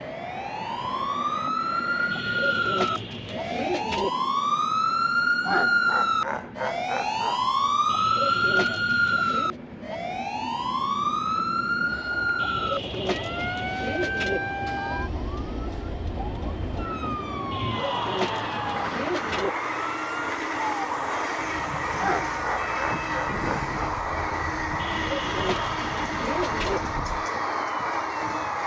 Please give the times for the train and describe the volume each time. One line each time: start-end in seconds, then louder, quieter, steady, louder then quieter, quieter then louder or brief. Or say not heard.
0.0-28.6 louder.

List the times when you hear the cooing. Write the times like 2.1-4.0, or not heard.
2.1-4.1, 7.8-9.6, 12.3-14.4, 17.5-19.5, 24.8-26.8.